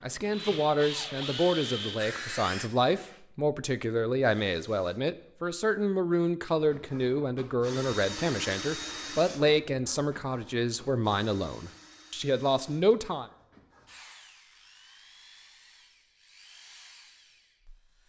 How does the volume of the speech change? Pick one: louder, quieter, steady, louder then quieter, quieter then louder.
steady.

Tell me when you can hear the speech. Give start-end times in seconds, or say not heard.
0.0-13.3.